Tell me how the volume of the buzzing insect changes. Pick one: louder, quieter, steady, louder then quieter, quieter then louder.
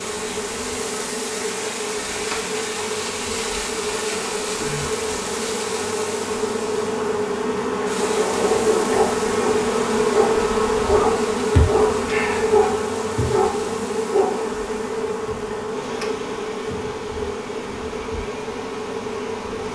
louder then quieter.